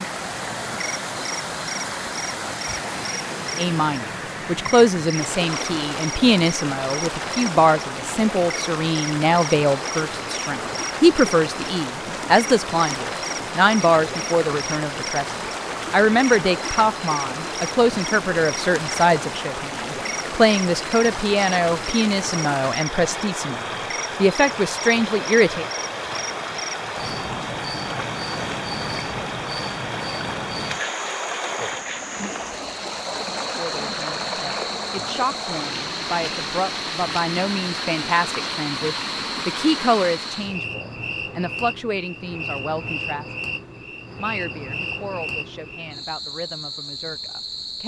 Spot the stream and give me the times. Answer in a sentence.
You can hear the stream from 0.0 to 40.6 s.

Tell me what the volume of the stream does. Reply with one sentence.
The loudness of the stream stays about the same.